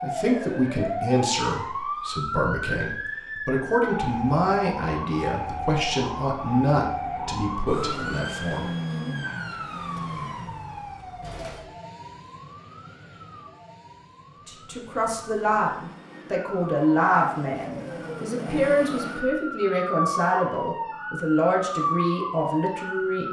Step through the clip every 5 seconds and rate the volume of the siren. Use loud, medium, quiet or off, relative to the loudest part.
loud, loud, medium, medium, loud.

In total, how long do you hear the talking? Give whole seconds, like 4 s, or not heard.
18 s.